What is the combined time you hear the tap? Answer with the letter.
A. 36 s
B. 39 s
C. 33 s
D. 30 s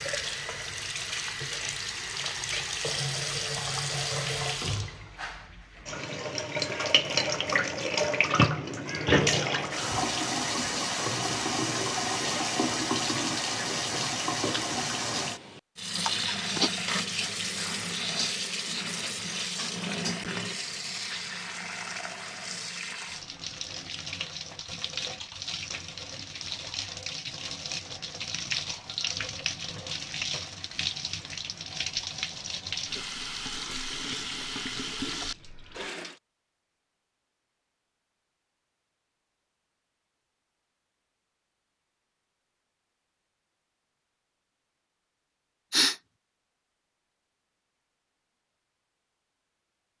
A.